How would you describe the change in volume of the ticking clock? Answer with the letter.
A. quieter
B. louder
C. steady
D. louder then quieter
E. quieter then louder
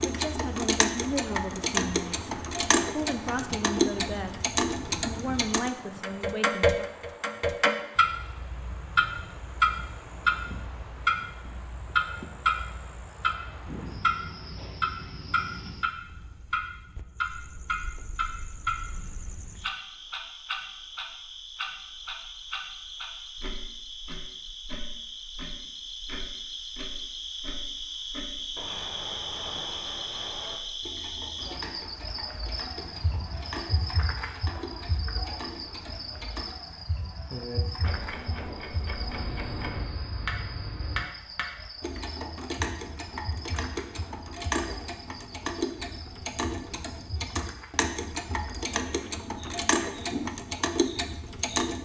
E.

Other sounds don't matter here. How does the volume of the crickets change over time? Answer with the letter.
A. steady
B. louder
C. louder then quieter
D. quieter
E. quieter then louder
C.